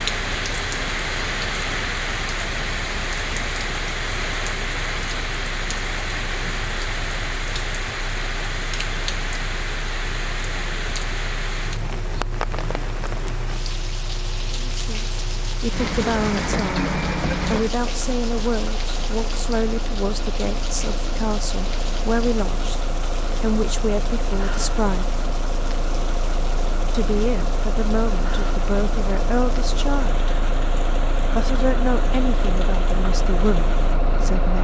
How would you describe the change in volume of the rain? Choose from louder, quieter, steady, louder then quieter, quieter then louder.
quieter.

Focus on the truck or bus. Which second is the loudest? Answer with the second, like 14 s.
17 s.